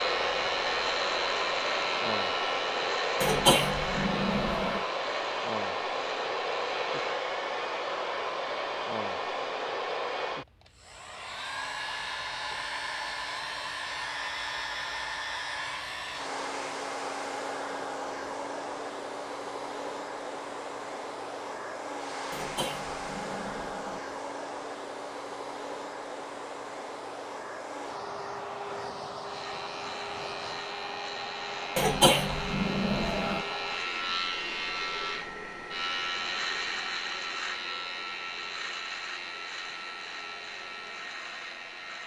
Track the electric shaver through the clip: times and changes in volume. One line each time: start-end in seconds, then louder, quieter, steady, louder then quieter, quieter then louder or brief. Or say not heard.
0.0-7.2 quieter
29.2-42.0 louder then quieter.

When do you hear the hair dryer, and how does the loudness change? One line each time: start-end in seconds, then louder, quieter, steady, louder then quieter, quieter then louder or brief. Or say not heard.
0.0-42.0 quieter.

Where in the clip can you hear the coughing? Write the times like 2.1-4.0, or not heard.
3.2-4.8, 22.3-24.0, 31.8-33.5.